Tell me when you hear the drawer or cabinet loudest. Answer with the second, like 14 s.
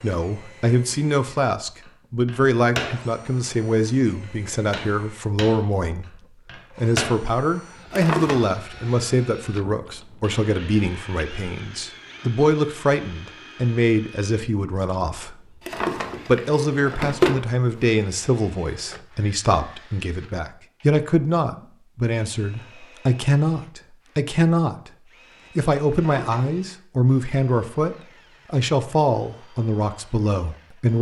17 s.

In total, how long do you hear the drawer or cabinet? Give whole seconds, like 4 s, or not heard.
3 s.